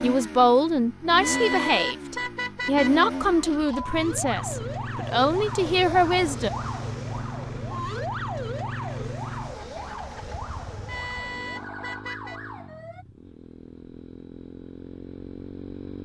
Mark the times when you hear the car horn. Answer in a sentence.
The car horn can be heard from 1.2 to 3.1 s and from 10.8 to 12.4 s.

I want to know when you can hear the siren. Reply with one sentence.
You can hear the siren from 3.2 to 13.1 s.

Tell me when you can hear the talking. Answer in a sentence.
The talking can be heard from 0.0 to 6.5 s.